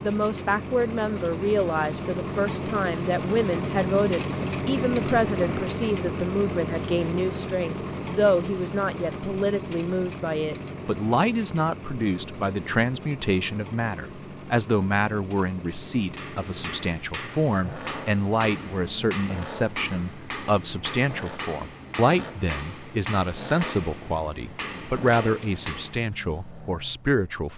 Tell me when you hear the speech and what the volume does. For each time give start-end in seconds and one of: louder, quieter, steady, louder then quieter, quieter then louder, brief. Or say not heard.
0.0-27.5 steady.